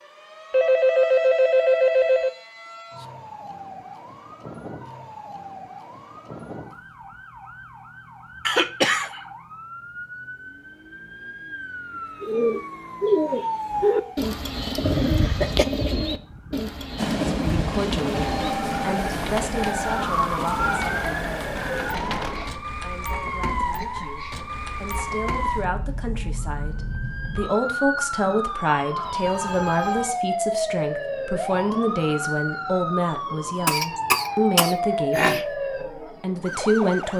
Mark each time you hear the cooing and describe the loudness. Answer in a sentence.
You can hear the cooing from 12.2 to 22.6 s, getting quieter.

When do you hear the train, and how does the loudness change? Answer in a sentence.
You can hear the train from 16.9 to 22.2 s, getting quieter.